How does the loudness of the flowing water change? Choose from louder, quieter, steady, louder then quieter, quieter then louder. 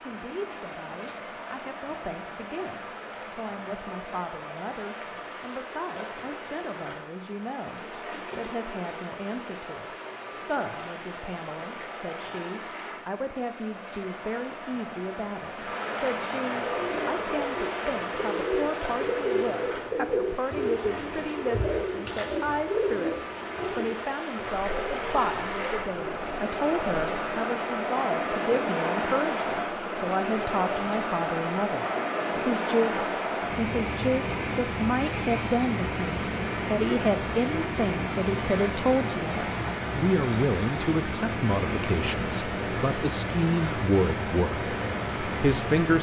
louder.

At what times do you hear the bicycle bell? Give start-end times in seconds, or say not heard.
not heard.